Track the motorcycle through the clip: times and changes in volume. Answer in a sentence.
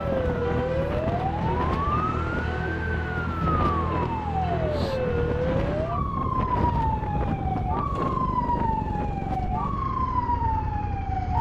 The motorcycle can be heard from 0.0 to 11.3 s, at a steady volume.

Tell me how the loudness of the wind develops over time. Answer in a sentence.
The loudness of the wind stays about the same.